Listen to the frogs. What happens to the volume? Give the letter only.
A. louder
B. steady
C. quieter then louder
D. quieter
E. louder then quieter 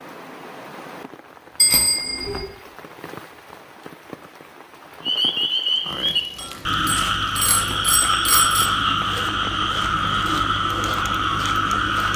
B.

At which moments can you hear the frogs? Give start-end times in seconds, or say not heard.
5.0-12.1.